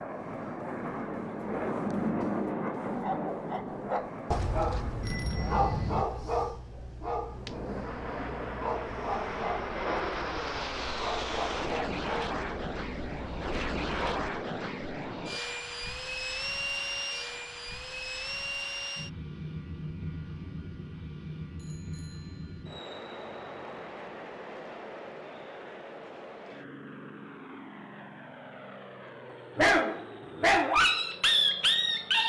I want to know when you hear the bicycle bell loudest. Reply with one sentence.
The volume of the bicycle bell peaks at 6 seconds.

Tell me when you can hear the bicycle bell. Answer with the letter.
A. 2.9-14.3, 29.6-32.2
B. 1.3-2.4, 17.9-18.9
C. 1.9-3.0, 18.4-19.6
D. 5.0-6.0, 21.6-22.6
D.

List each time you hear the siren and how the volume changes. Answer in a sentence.
The siren can't be heard in this clip.